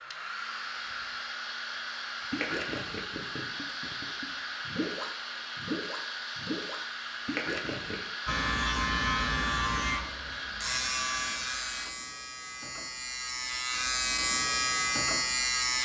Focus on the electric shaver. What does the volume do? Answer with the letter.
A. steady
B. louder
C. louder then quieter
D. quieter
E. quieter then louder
E.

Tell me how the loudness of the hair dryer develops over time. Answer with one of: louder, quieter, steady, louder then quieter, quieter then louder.
steady.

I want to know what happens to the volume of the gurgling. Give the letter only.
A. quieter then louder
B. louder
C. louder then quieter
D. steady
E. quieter
A.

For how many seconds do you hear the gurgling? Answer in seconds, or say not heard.
6 s.